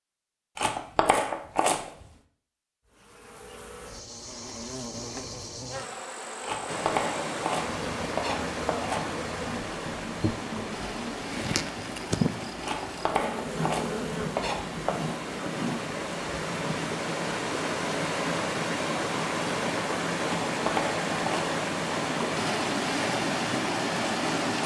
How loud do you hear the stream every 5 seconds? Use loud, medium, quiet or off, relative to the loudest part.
off, medium, medium, loud, loud.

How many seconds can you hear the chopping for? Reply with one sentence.
You can hear the chopping for 8 seconds altogether.